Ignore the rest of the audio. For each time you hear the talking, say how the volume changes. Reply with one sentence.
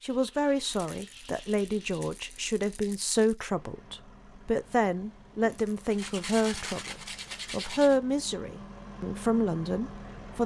The talking can be heard from 0.0 to 10.4 s, at a steady volume.